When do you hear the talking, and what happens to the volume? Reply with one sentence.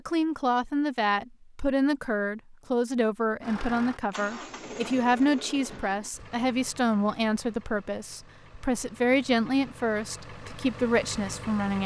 The talking can be heard from 0.1 to 11.8 s, at a steady volume.